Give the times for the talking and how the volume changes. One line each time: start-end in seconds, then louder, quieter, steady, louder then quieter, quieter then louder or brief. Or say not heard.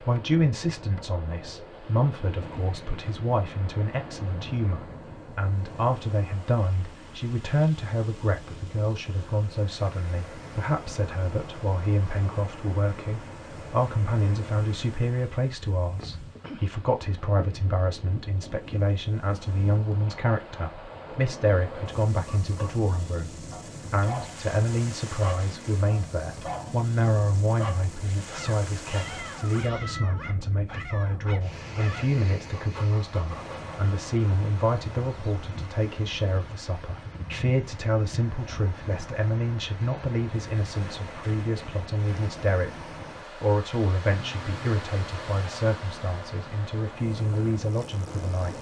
0.0-48.5 steady.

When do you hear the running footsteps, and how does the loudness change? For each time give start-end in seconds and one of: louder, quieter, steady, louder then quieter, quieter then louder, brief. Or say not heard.
not heard.